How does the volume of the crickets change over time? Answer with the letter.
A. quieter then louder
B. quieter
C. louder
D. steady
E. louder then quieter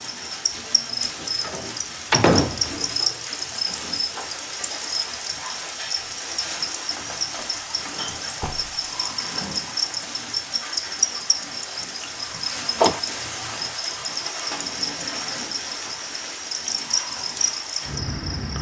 D.